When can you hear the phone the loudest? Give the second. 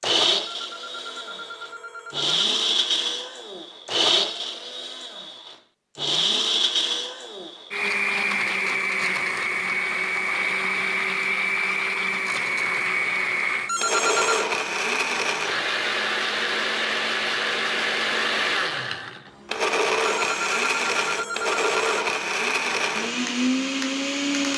14 s.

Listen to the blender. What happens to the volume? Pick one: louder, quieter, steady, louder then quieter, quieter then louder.
steady.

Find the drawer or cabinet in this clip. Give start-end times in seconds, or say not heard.
not heard.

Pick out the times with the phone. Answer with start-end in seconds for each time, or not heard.
0.5-2.4, 13.7-14.4, 20.0-21.9.